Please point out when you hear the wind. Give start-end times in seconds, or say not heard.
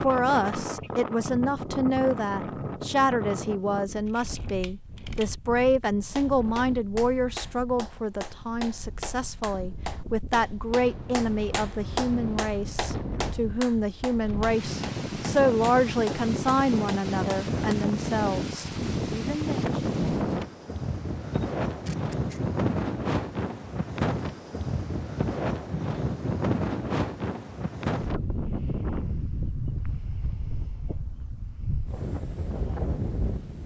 0.0-33.6.